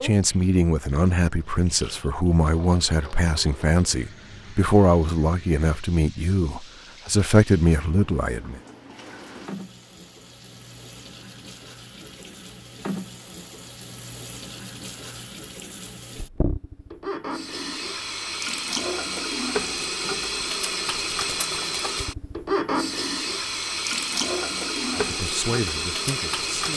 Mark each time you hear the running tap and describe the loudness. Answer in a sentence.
The running tap can be heard from 0.0 to 26.7 s, getting louder.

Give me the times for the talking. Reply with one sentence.
You can hear the talking from 0.0 to 8.6 s and from 24.9 to 26.7 s.